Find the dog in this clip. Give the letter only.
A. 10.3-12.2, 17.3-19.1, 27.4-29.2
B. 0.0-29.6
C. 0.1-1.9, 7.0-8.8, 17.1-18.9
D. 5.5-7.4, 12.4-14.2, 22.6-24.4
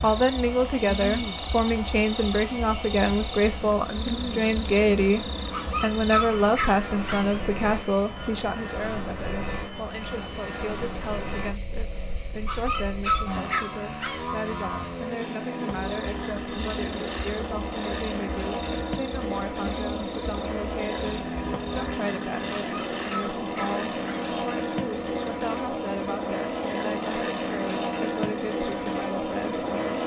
D.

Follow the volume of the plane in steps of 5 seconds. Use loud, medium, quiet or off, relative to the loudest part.
medium, medium, medium, loud, loud, loud.